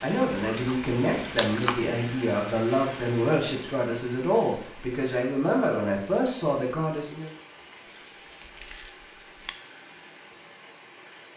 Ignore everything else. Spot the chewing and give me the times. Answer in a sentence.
The chewing can be heard from 0.2 to 1.8 s and from 8.4 to 9.6 s.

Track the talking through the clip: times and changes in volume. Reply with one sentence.
You can hear the talking from 0.0 to 7.3 s, at a steady volume.